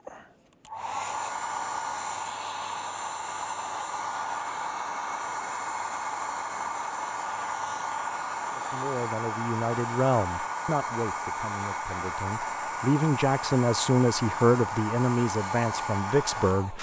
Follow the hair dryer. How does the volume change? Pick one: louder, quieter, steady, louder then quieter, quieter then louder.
steady.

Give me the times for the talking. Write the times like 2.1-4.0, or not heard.
8.5-16.7.